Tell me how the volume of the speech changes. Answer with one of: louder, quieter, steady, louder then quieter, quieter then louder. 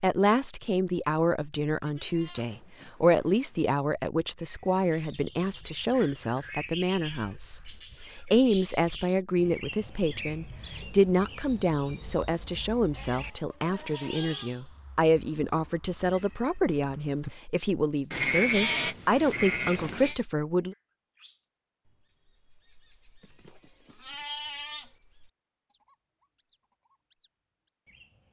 steady.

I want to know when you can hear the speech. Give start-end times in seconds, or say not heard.
0.0-20.8.